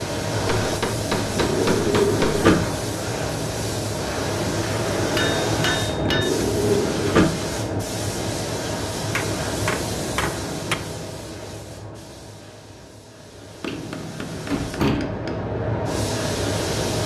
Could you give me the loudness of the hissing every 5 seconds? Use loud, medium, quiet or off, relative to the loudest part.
loud, loud, medium, loud.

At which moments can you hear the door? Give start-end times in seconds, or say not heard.
1.2-2.7, 5.8-7.4, 13.7-15.2.